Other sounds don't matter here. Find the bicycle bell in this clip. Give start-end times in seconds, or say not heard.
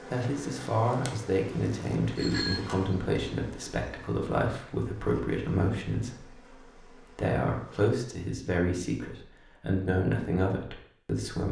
1.6-2.6.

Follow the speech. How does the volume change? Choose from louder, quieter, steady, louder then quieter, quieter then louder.
steady.